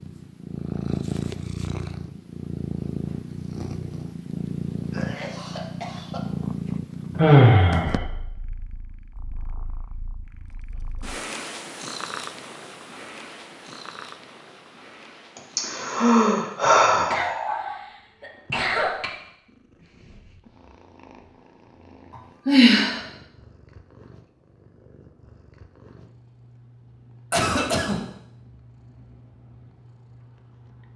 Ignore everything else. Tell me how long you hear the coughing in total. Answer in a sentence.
The coughing can be heard for 4 seconds in total.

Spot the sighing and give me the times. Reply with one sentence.
The sighing can be heard from 7.2 to 8.0 s, from 15.6 to 17.8 s and from 22.4 to 23.0 s.